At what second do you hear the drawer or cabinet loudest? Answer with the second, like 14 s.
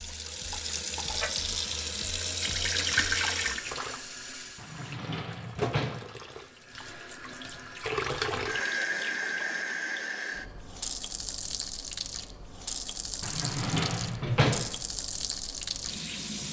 14 s.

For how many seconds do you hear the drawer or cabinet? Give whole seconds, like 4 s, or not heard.
3 s.